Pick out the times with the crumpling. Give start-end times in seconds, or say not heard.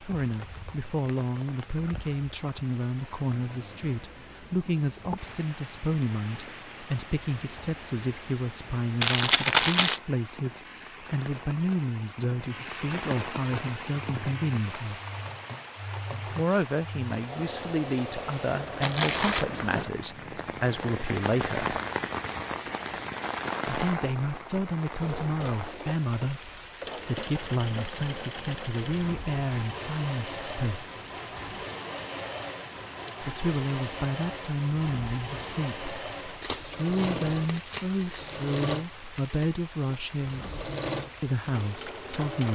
9.0-10.0, 18.8-19.4, 36.4-38.8.